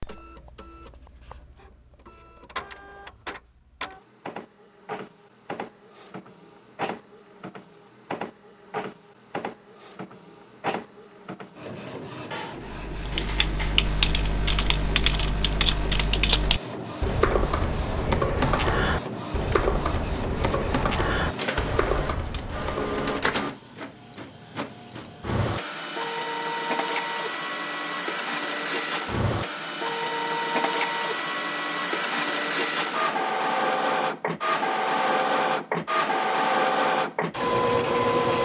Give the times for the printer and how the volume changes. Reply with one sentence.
You can hear the printer from 0.0 to 38.4 s, getting louder.